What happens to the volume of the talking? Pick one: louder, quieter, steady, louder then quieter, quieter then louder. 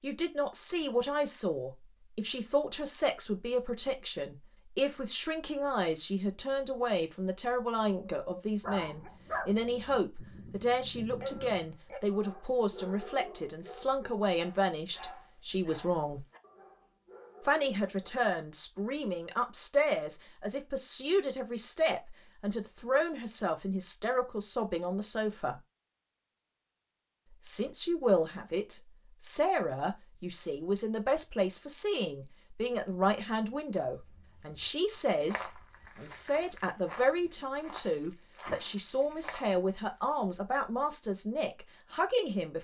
steady.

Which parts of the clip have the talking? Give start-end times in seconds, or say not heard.
0.0-16.2, 17.4-25.6, 27.4-42.5.